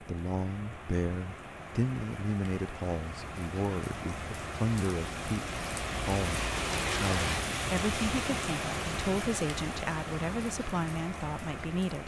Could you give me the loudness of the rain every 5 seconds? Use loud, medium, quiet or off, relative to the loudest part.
medium, loud, medium.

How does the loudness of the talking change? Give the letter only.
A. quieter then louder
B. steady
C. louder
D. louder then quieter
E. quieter
B.